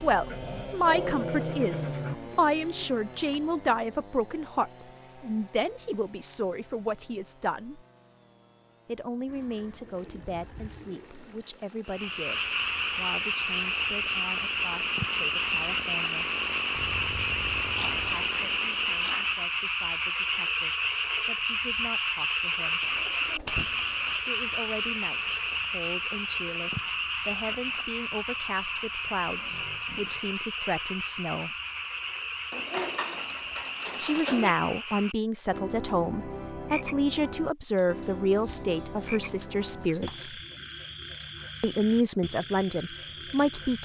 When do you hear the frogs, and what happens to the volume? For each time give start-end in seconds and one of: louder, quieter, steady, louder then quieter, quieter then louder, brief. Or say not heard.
11.8-43.8 quieter.